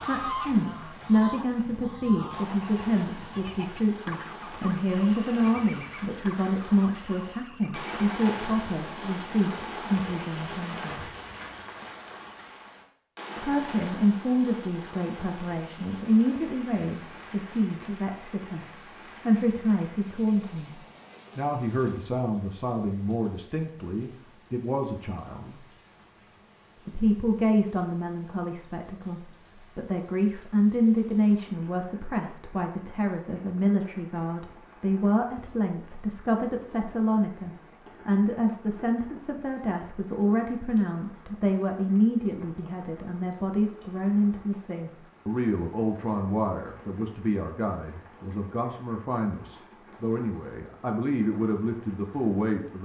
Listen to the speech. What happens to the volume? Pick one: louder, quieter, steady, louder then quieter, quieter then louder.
steady.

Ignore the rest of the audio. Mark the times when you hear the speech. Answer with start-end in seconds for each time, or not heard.
0.1-11.1, 13.4-25.6, 26.9-52.8.